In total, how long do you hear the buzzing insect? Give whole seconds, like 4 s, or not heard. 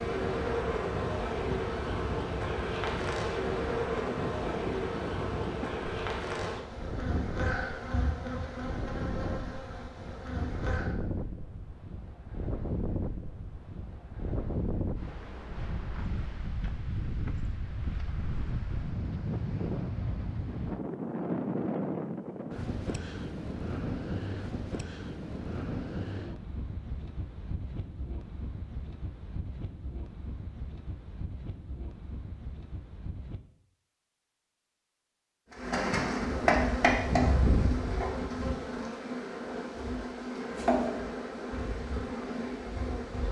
19 s.